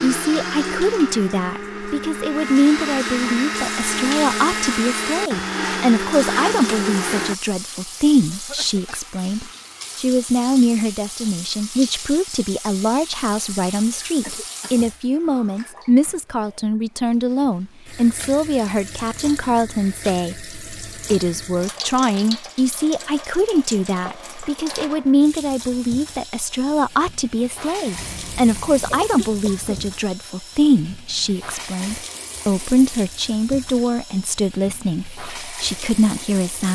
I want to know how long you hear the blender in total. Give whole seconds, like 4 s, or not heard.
7 s.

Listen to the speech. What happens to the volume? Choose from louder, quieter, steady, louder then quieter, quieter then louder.
steady.